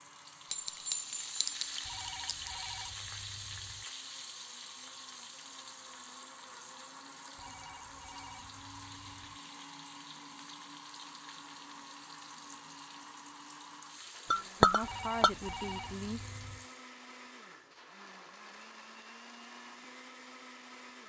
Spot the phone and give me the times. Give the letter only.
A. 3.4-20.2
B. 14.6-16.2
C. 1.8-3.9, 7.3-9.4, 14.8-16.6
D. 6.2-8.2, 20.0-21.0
C.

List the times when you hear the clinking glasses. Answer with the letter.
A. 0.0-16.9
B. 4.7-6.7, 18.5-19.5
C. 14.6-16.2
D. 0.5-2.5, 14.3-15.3
D.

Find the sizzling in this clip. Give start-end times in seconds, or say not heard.
0.0-16.9.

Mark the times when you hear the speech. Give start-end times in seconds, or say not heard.
14.6-16.2.